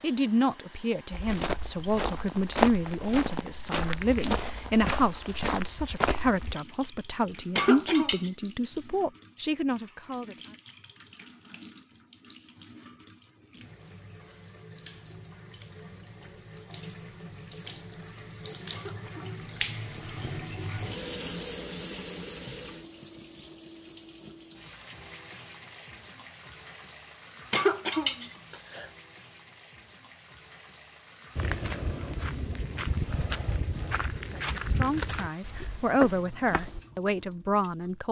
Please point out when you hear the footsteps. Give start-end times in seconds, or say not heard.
1.1-6.5, 31.4-36.8.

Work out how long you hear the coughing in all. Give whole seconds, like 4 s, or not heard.
3 s.